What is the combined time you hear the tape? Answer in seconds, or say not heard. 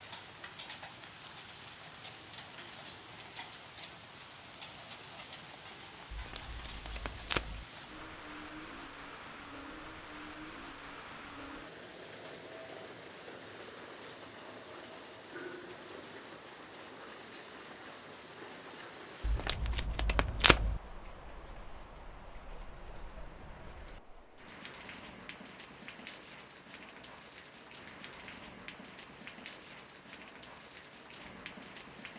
3 s.